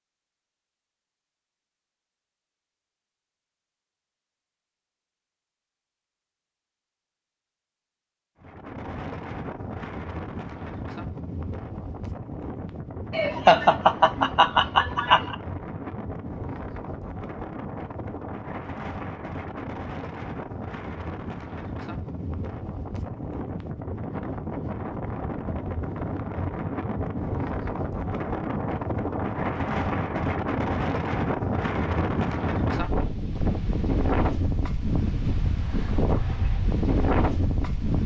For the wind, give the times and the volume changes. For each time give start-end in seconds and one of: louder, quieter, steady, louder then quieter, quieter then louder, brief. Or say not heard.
8.4-38.0 louder.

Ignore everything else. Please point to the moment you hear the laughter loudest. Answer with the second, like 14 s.
14 s.